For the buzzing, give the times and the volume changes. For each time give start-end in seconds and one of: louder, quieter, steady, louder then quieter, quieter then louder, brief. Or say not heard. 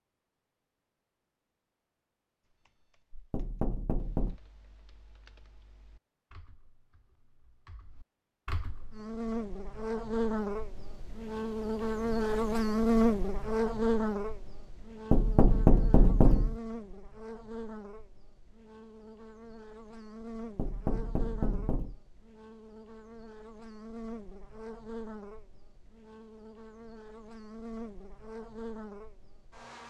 8.9-29.8 quieter.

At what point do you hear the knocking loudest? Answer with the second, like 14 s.
16 s.